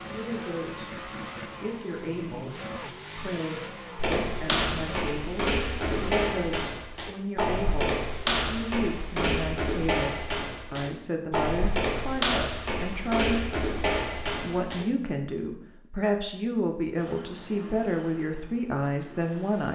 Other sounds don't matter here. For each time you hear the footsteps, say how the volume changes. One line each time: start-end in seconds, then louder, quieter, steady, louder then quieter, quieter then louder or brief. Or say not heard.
4.0-14.8 steady.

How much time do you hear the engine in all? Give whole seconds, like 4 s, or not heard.
9 s.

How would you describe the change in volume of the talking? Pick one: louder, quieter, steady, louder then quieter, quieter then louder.
louder.